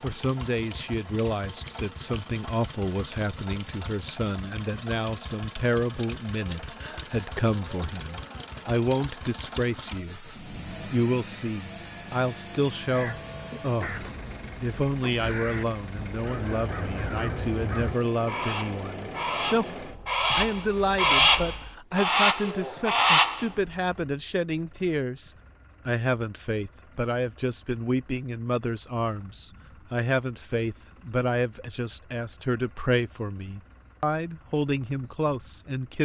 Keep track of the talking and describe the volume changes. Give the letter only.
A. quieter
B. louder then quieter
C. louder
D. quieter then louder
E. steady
E.